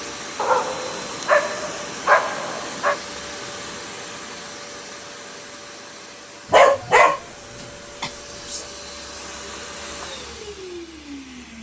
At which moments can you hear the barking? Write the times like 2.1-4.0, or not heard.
0.3-3.0, 6.5-8.7.